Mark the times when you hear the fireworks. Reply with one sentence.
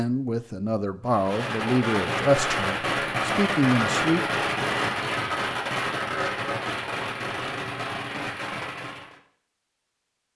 You can hear the fireworks from 1.1 to 9.2 s.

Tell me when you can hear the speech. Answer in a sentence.
The speech can be heard from 0.0 to 4.2 s.